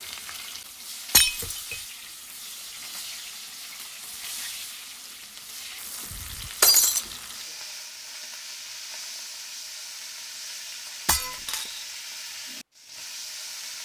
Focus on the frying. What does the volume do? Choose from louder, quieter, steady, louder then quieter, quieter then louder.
steady.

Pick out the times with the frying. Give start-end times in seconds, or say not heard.
0.0-13.8.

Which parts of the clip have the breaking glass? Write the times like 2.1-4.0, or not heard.
1.1-1.8, 6.6-7.0, 11.1-11.8.